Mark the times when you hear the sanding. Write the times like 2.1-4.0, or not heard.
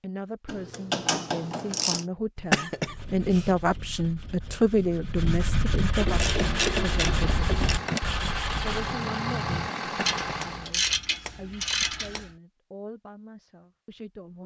2.8-9.0.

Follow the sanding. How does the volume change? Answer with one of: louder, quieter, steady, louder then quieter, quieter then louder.
louder.